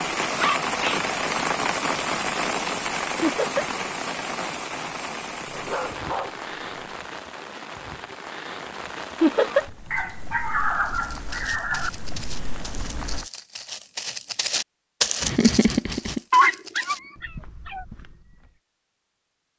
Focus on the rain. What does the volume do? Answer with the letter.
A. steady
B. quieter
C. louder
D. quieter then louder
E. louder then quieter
B.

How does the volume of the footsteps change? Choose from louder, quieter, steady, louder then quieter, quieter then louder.
louder then quieter.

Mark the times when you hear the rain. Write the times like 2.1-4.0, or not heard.
0.0-13.2.